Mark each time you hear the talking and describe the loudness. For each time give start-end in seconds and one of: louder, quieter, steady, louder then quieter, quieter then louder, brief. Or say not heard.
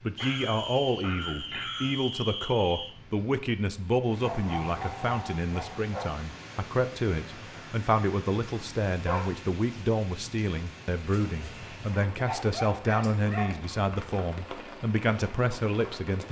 0.0-16.2 steady.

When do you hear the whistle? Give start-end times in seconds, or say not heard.
0.1-3.0.